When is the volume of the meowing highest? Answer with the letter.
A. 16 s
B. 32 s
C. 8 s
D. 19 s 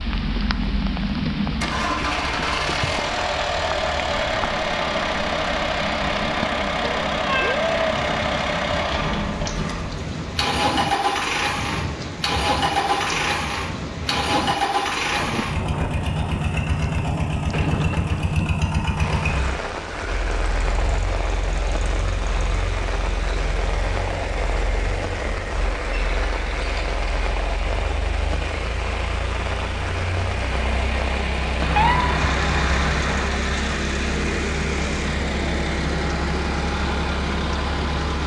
B.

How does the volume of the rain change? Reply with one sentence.
The loudness of the rain stays about the same.